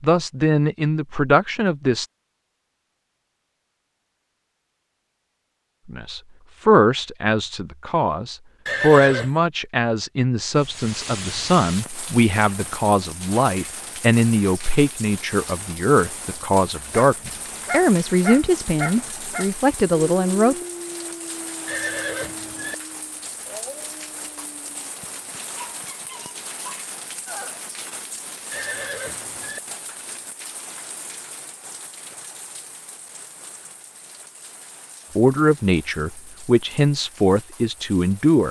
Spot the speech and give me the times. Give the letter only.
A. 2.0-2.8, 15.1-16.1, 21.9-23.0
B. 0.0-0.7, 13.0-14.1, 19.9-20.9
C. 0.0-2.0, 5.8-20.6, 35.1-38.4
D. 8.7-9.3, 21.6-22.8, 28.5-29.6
C.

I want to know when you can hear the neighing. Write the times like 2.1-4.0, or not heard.
8.7-9.3, 21.6-22.8, 28.5-29.6.